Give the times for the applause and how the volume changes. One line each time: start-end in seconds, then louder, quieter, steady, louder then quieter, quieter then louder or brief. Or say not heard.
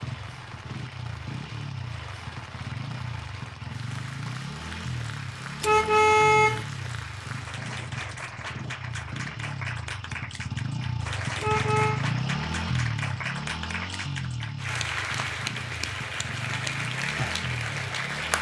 0.0-18.3 louder.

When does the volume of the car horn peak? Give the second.
6 s.